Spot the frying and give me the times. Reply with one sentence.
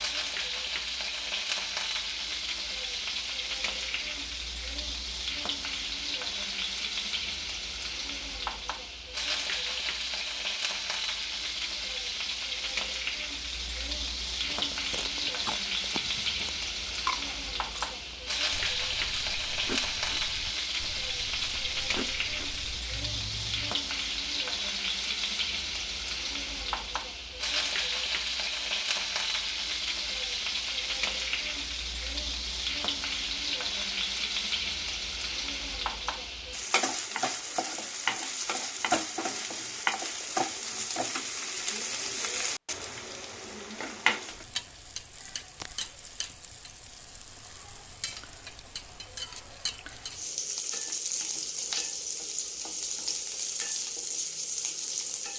The frying can be heard from 0.0 to 55.3 s.